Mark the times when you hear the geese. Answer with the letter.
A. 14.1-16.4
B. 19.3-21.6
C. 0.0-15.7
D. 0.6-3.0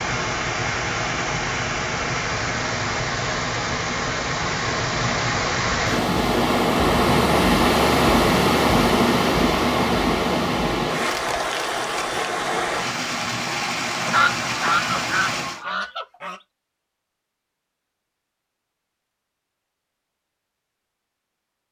A.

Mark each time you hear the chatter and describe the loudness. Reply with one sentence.
You can't hear the chatter here.